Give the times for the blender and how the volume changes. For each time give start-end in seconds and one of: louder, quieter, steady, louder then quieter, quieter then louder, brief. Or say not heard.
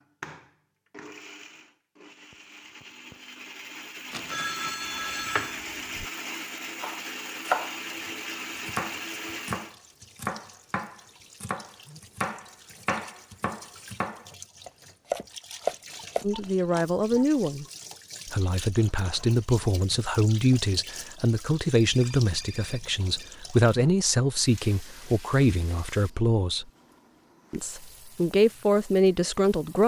0.0-9.8 louder.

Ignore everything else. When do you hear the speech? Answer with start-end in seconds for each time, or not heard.
16.2-17.6, 18.2-26.6, 27.5-29.8.